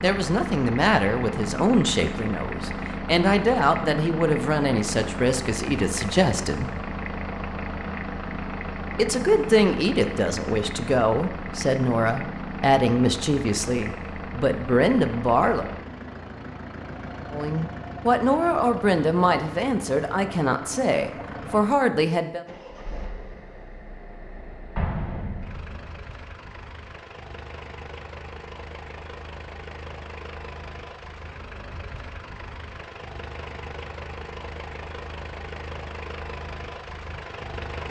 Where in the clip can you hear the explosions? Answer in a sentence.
The explosions can be heard from 24.8 to 26.0 s.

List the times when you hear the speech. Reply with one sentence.
The speech can be heard from 0.0 to 6.7 s, from 8.9 to 15.7 s and from 17.3 to 22.4 s.